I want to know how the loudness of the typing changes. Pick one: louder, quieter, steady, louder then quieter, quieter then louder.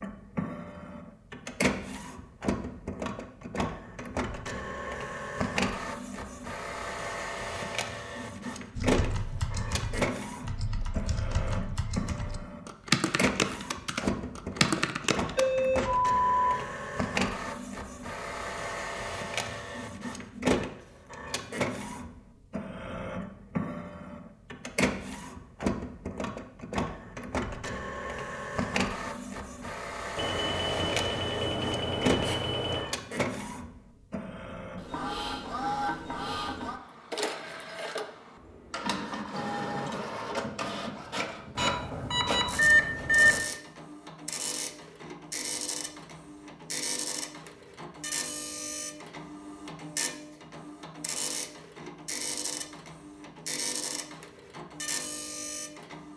louder.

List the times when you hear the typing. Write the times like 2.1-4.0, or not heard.
8.8-15.4.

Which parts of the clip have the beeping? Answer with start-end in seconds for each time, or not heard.
15.3-16.6, 30.1-32.9, 41.5-43.4.